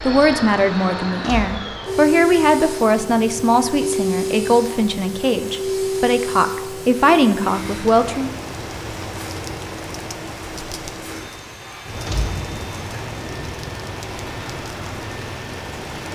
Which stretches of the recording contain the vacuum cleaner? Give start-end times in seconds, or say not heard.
0.0-16.1.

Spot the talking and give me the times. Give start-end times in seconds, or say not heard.
0.0-8.3.